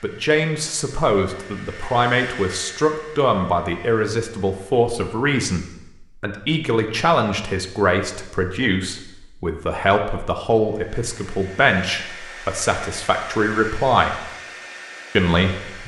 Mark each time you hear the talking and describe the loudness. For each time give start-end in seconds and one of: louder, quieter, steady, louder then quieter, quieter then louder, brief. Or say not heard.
0.0-14.2 steady
15.2-15.8 brief.